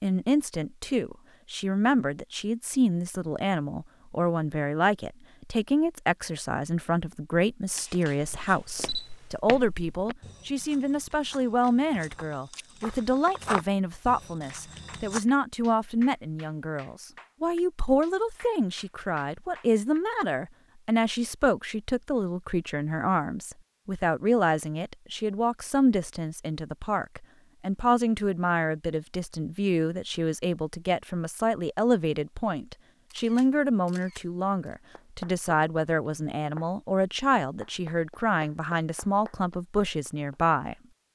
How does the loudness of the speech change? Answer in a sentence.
The loudness of the speech stays about the same.